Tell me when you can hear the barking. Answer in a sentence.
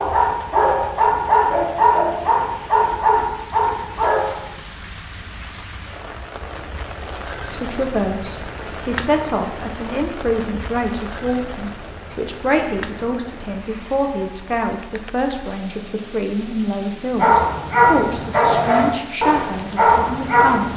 The barking can be heard from 0.0 to 4.4 s and from 17.1 to 20.7 s.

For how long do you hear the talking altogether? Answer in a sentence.
The talking can be heard for 13 seconds in total.